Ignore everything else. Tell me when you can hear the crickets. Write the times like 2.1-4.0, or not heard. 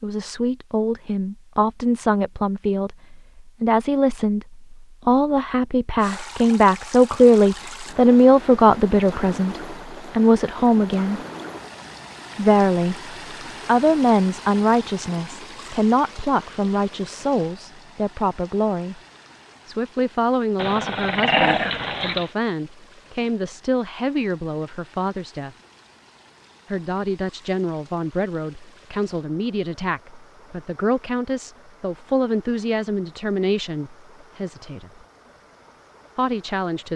not heard.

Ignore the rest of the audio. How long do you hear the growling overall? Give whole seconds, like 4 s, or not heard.
2 s.